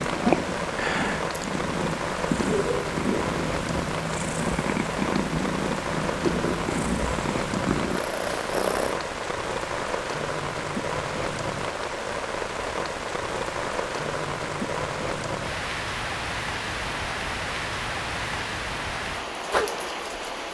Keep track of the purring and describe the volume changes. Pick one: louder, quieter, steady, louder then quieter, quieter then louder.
steady.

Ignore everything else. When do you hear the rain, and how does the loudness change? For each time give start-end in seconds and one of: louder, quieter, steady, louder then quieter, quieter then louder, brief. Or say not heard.
0.0-20.4 steady.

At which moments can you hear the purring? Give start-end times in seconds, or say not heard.
0.0-8.9.